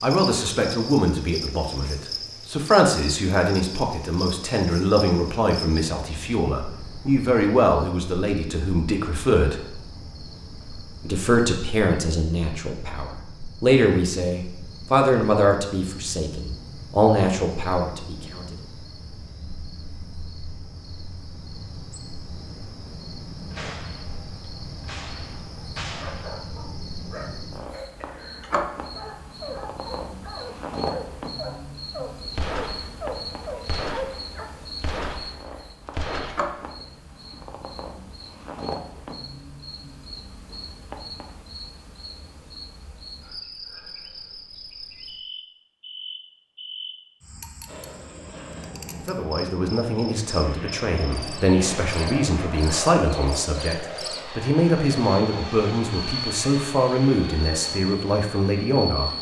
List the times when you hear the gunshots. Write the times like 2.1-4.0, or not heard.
23.5-24.1, 24.8-26.5, 32.4-36.7.